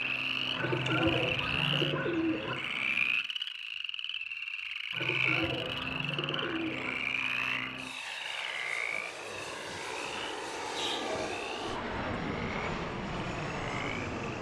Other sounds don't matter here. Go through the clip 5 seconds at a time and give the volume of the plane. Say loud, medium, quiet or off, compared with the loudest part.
medium, medium, loud.